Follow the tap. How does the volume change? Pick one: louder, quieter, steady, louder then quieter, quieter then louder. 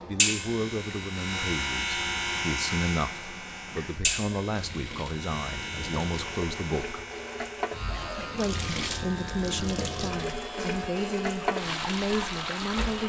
louder.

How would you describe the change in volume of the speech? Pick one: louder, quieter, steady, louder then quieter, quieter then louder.
steady.